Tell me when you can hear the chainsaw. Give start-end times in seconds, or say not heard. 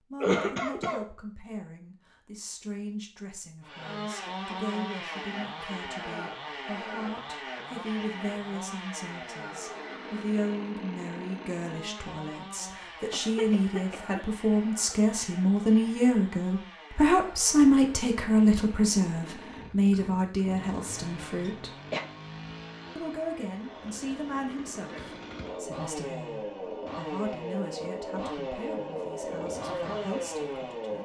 3.6-31.0.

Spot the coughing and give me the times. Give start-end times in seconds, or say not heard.
0.2-1.1, 13.1-14.2, 21.4-22.1.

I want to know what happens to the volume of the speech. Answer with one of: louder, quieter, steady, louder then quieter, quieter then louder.
louder then quieter.